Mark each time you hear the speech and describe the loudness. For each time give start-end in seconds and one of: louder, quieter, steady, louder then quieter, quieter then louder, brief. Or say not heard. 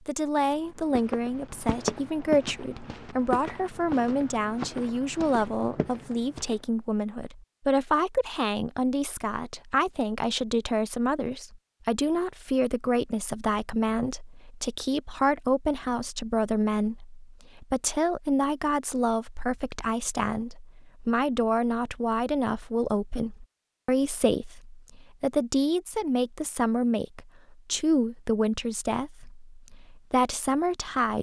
0.1-31.1 steady.